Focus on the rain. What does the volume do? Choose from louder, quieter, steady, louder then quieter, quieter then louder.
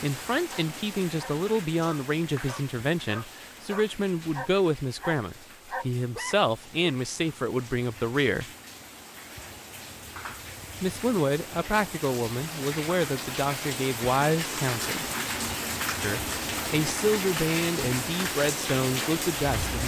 quieter then louder.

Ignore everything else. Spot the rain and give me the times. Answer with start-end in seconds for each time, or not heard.
0.0-19.8.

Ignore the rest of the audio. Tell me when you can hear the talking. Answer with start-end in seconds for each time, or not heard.
0.0-8.4, 10.8-15.1, 16.0-19.8.